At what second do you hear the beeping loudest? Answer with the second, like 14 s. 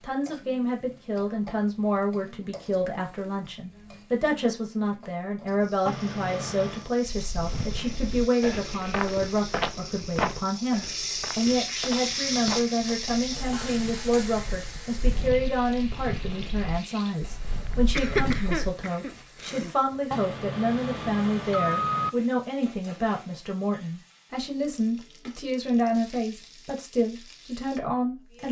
22 s.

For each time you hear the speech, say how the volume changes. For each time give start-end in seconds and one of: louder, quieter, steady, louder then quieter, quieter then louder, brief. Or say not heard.
0.0-28.4 steady.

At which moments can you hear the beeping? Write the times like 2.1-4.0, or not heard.
5.8-6.8, 20.1-22.1.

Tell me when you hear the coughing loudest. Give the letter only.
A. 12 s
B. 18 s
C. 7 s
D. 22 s
B.